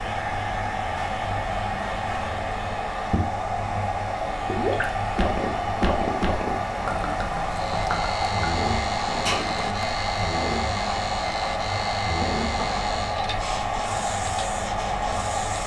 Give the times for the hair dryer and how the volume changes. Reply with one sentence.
You can hear the hair dryer from 0.0 to 15.6 s, at a steady volume.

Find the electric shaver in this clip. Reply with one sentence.
You can hear the electric shaver from 7.5 to 15.6 s.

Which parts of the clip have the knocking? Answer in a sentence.
The knocking can be heard from 12.2 to 12.8 s.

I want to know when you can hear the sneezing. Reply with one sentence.
The sneezing can be heard from 9.2 to 9.8 s.